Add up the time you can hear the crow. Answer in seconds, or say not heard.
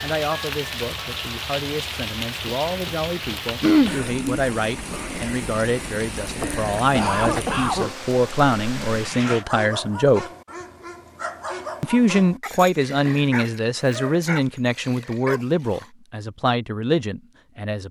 not heard.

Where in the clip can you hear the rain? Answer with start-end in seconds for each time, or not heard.
0.0-9.4.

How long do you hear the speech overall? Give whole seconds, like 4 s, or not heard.
16 s.